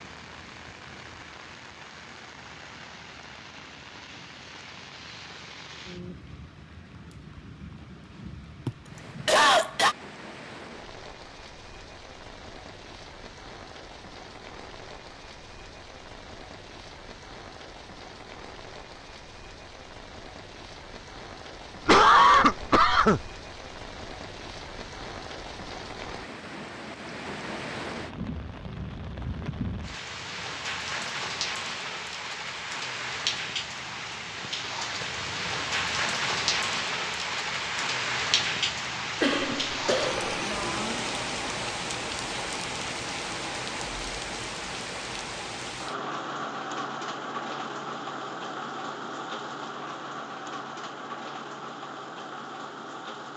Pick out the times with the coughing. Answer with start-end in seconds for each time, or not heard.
8.7-9.9, 21.9-23.3, 39.2-40.4.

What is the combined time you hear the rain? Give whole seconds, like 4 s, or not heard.
53 s.